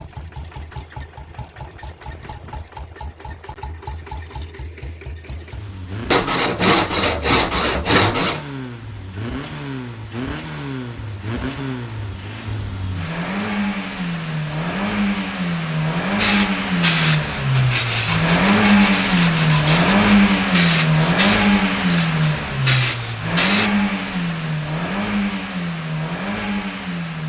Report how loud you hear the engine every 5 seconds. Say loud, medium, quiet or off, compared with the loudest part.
quiet, quiet, medium, loud, loud, medium.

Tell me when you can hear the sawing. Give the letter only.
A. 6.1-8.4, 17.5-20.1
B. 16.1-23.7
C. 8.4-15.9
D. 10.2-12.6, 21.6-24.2
A.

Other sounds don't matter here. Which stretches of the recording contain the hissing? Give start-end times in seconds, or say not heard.
16.1-23.7.